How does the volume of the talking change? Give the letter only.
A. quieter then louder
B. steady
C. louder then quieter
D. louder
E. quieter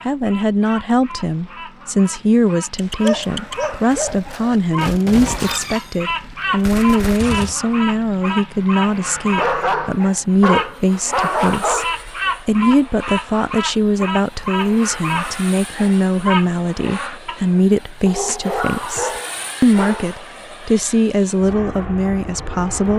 B.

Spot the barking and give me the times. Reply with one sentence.
You can hear the barking from 2.8 to 4.6 s, from 9.3 to 12.0 s and from 18.1 to 20.2 s.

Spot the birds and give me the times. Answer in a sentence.
The birds can be heard from 0.1 to 17.5 s.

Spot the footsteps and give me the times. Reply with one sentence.
The footsteps can't be heard in this clip.